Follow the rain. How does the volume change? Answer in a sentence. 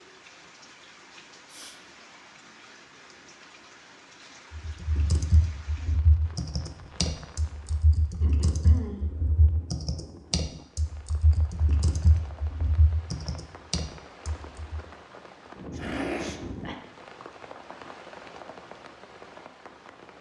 The loudness of the rain goes up.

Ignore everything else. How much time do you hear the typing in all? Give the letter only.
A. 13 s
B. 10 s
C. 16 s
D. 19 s
B.